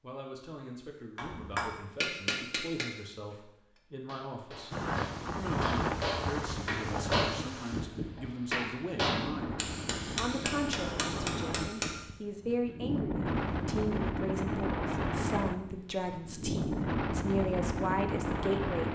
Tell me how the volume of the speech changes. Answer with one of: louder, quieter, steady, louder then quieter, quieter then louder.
louder.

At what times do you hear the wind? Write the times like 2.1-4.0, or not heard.
4.7-18.9.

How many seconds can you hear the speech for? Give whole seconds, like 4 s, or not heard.
19 s.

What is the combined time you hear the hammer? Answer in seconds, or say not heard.
11 s.